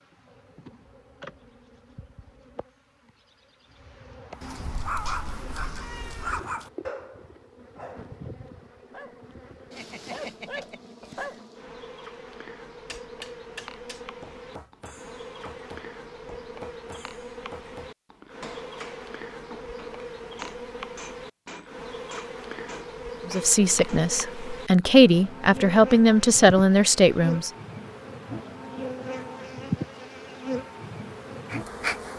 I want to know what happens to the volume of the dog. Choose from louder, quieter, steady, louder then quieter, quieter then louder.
quieter then louder.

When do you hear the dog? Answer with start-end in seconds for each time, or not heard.
4.3-11.3.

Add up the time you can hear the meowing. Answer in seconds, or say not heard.
2 s.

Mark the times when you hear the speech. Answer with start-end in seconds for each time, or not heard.
23.2-27.5.